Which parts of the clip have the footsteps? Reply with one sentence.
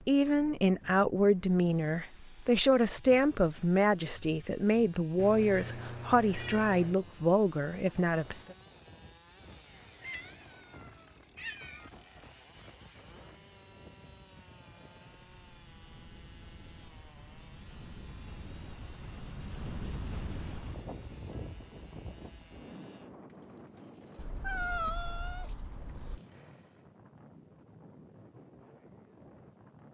You can't hear the footsteps here.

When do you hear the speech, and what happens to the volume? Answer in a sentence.
You can hear the speech from 0.1 to 8.6 s, at a steady volume.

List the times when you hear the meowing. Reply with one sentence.
You can hear the meowing from 5.2 to 7.0 s, from 10.0 to 11.9 s and from 24.1 to 26.2 s.